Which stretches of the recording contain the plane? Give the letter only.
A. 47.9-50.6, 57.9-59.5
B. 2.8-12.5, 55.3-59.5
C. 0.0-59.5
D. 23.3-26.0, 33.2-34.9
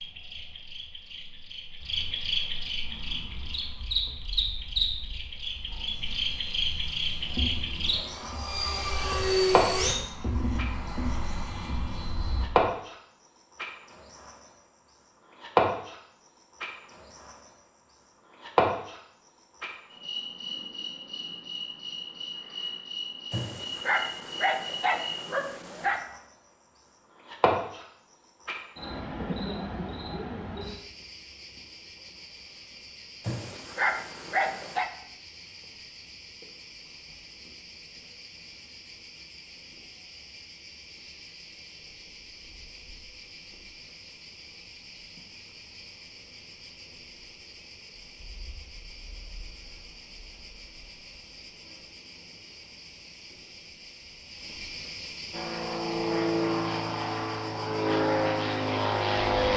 B.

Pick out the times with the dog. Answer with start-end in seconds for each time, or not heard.
23.3-26.0, 33.2-34.9.